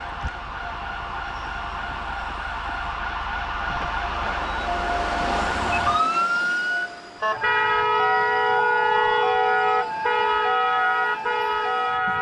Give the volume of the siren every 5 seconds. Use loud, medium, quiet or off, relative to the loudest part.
medium, loud, loud.